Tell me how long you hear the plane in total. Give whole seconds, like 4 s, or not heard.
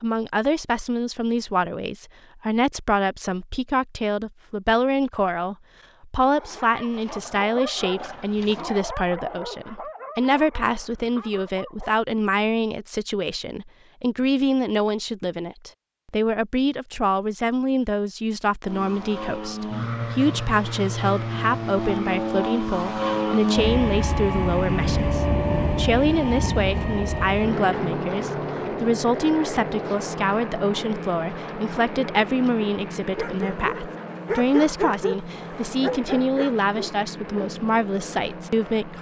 20 s.